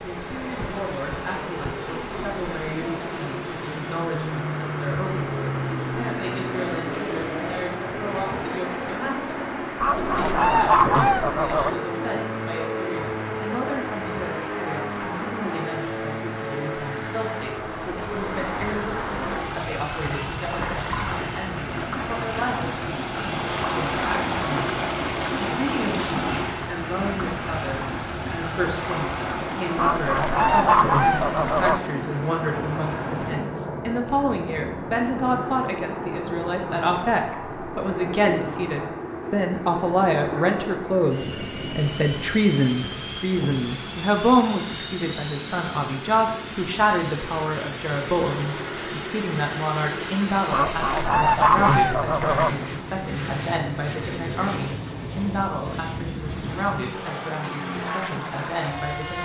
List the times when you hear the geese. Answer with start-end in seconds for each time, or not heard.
9.8-11.8, 29.8-31.8, 50.5-52.5.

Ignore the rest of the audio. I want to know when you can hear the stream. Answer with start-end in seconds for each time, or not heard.
0.0-33.5.